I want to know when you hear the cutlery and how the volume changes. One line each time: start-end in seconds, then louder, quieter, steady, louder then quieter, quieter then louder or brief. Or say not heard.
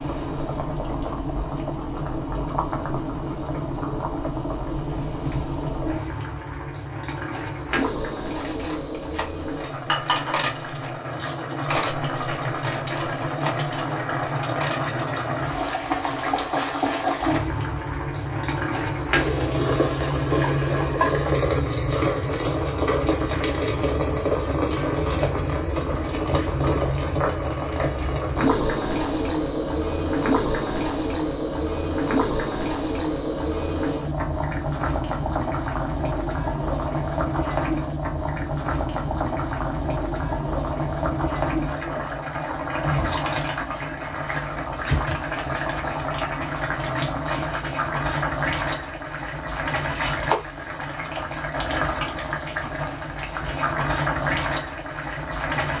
8.3-16.8 louder then quieter.